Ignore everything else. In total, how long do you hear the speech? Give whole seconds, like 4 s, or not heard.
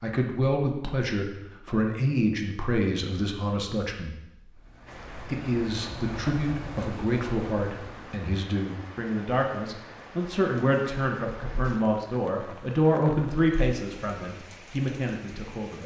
15 s.